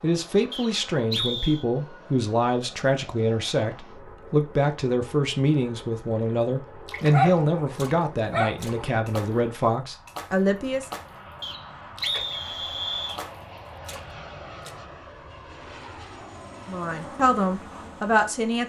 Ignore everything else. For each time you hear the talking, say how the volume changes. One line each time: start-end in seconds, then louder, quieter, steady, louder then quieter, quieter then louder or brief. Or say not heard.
0.0-10.9 steady
16.6-18.6 brief.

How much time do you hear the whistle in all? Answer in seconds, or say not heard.
3 s.